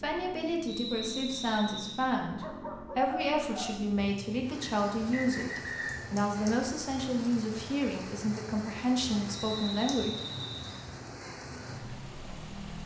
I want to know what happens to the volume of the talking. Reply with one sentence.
The loudness of the talking stays about the same.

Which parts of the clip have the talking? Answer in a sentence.
You can hear the talking from 0.0 to 10.2 s.